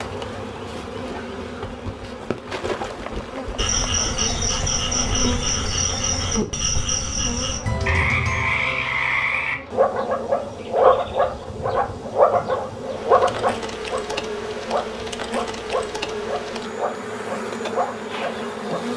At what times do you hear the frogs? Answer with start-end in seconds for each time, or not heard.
3.5-18.9.